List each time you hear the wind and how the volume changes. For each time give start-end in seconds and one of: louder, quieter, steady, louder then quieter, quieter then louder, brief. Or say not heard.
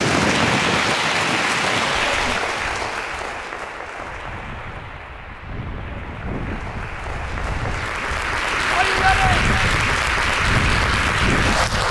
0.0-11.8 quieter then louder.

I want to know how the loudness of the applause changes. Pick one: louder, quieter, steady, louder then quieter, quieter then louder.
quieter then louder.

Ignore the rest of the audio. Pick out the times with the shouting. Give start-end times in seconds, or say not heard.
8.7-9.7.